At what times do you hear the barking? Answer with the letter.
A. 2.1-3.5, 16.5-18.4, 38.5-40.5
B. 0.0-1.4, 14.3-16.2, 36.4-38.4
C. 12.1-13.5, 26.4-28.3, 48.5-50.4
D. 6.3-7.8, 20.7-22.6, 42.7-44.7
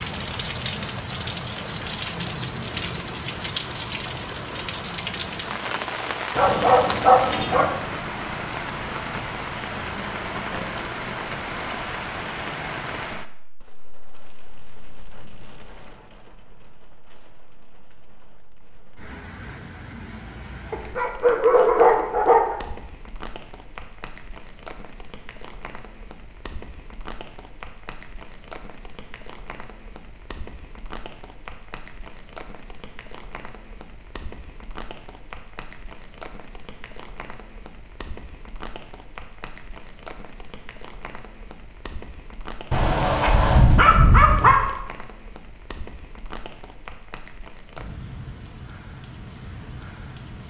D.